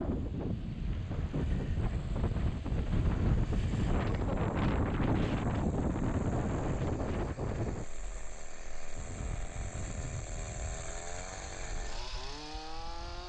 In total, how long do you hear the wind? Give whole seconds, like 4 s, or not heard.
13 s.